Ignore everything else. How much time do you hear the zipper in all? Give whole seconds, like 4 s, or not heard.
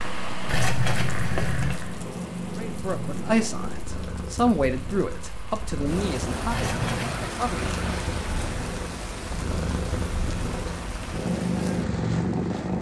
2 s.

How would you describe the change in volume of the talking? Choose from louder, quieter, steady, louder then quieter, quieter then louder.
quieter.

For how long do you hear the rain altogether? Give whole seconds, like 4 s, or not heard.
13 s.